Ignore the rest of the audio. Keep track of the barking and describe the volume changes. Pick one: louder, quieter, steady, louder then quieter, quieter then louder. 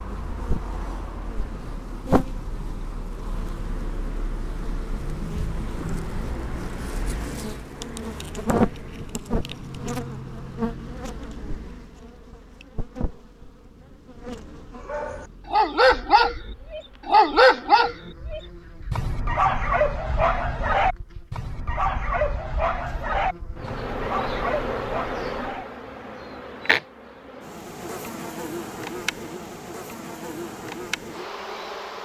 quieter.